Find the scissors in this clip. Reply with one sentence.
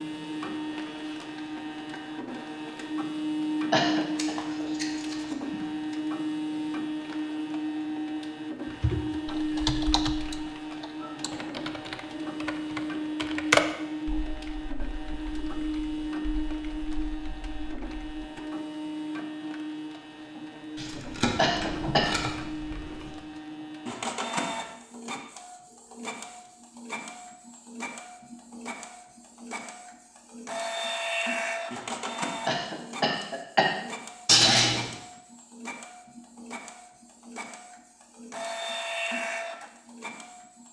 You can hear the scissors from 4.2 to 5.6 s, from 20.8 to 23.1 s and from 34.2 to 34.9 s.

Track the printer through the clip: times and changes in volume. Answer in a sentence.
You can hear the printer from 0.0 to 40.6 s, getting quieter.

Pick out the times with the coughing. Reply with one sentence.
You can hear the coughing from 3.7 to 4.3 s, from 21.4 to 22.1 s and from 32.5 to 33.7 s.